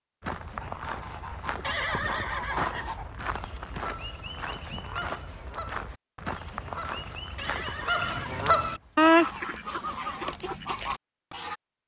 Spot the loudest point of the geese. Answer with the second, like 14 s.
9 s.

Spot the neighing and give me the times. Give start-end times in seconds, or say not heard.
1.6-3.0, 7.3-8.4.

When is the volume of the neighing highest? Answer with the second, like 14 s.
2 s.